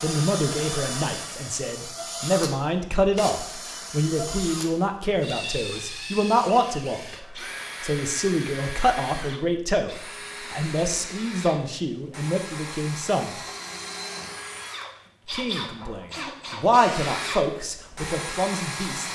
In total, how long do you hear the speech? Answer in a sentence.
You can hear the speech for 17 seconds altogether.